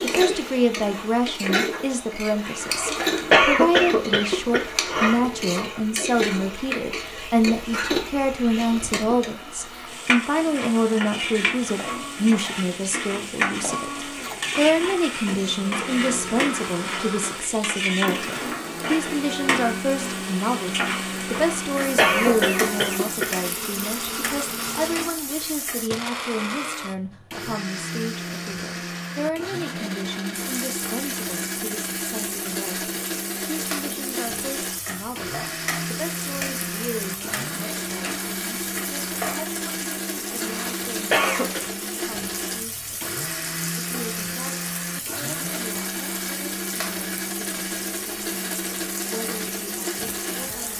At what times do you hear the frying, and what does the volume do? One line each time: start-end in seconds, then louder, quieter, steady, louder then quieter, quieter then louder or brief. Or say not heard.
0.0-25.9 steady
30.3-50.7 steady.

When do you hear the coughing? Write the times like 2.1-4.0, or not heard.
2.6-5.2, 21.5-23.4, 40.4-41.6.